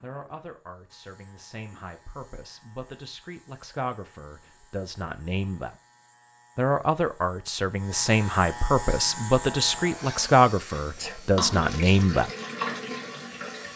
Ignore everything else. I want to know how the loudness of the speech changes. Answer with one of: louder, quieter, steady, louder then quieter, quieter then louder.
louder.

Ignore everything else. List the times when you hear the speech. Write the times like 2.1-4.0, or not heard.
0.0-5.8, 6.5-12.3.